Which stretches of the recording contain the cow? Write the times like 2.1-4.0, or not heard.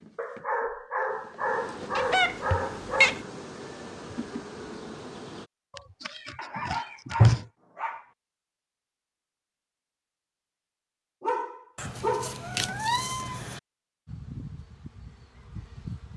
not heard.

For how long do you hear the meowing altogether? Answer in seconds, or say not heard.
5 s.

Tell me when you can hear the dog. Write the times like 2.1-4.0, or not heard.
0.1-3.1, 6.3-8.1, 11.2-12.4.